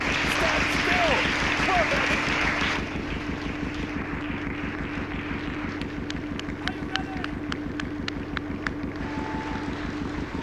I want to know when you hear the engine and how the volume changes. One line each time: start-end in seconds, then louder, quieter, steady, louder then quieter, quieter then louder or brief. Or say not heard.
0.0-10.3 steady.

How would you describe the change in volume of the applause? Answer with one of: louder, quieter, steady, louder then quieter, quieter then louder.
quieter.